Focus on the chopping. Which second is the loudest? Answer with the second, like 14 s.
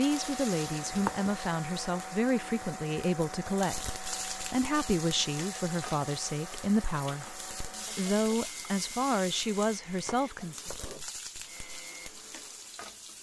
1 s.